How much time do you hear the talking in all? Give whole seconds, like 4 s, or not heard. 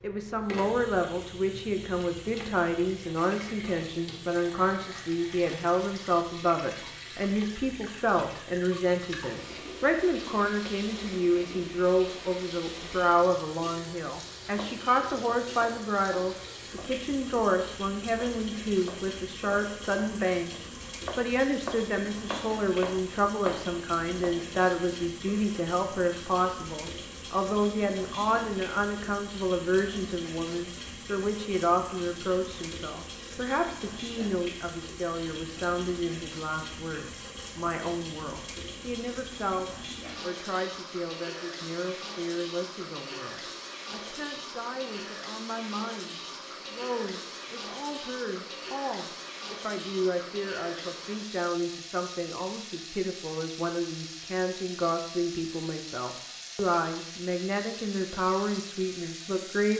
60 s.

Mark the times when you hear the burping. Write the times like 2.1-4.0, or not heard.
not heard.